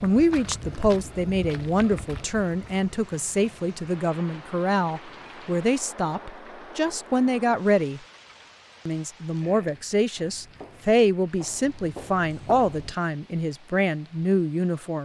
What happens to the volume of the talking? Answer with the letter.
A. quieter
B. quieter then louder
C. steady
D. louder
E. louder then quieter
C.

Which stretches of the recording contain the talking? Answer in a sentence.
The talking can be heard from 0.0 to 8.0 s and from 8.8 to 14.9 s.